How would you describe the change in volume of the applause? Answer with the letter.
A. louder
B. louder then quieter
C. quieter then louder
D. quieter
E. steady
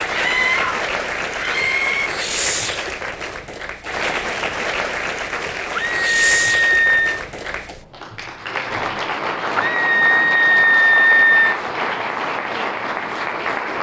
E.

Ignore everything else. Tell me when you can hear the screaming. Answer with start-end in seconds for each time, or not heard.
0.1-2.1, 5.8-7.2, 9.6-11.6.